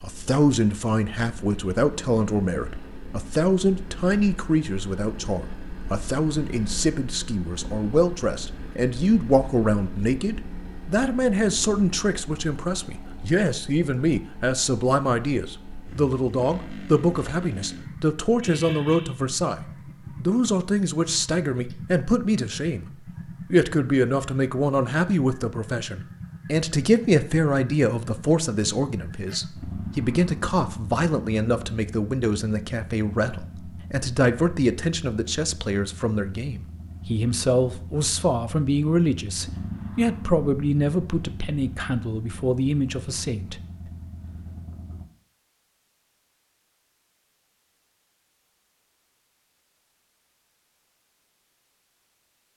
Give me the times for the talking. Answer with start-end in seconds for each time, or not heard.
0.0-22.9, 23.5-43.6.